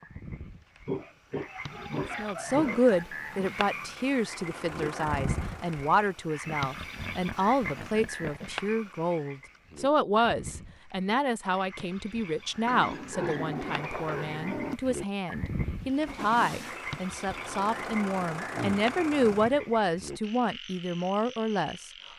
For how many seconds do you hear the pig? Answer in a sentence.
The pig can be heard for 8 seconds in total.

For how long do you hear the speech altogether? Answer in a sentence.
The speech can be heard for 20 seconds in total.